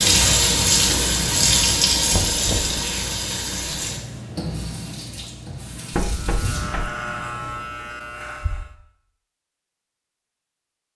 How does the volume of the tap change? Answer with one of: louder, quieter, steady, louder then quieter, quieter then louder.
quieter.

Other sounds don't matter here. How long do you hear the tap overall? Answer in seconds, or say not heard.
8 s.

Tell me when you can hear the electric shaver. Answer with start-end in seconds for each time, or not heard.
6.0-8.7.